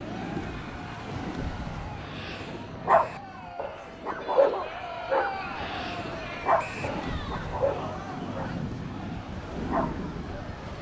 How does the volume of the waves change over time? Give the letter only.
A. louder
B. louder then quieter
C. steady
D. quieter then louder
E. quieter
D.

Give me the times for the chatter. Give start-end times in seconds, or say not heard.
0.0-10.7.